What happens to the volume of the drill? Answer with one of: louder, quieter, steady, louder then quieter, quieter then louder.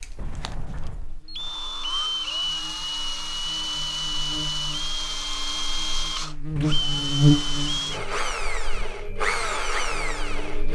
steady.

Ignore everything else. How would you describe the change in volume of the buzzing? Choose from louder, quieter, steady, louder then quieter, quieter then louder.
louder then quieter.